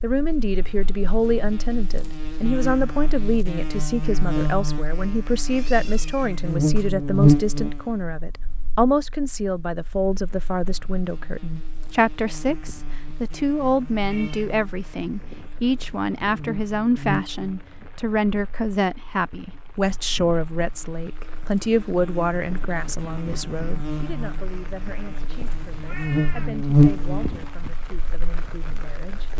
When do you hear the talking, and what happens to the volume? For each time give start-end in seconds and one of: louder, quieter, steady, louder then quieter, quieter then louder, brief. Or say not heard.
0.0-29.3 quieter.